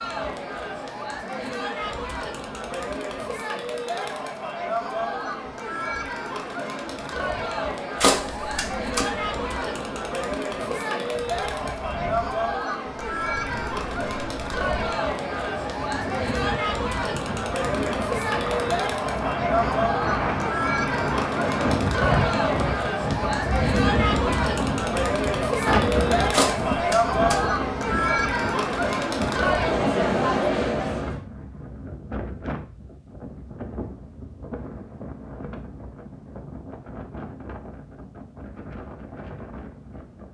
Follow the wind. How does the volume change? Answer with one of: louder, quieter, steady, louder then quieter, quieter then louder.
louder then quieter.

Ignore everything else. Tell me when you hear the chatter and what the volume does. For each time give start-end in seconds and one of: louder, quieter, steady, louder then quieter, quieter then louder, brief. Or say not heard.
0.0-31.2 louder.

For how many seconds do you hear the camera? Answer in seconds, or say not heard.
2 s.